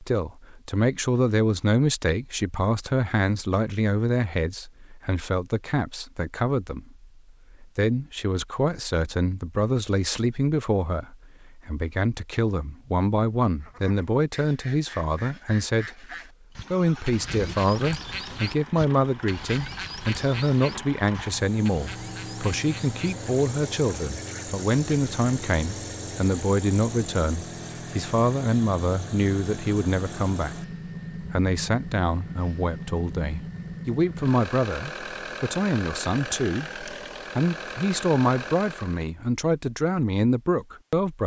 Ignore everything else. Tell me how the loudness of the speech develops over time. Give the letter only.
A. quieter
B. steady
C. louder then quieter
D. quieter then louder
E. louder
B.